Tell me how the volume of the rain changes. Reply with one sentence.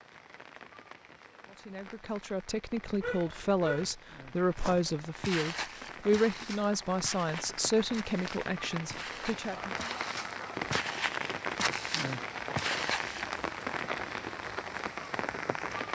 The loudness of the rain goes up.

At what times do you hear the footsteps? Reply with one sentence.
You can hear the footsteps from 4.5 to 13.4 s.